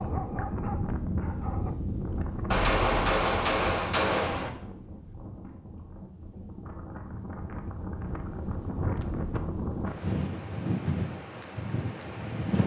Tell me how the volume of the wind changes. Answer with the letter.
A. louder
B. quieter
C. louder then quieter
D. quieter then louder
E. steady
D.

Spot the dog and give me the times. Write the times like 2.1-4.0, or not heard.
0.0-1.8.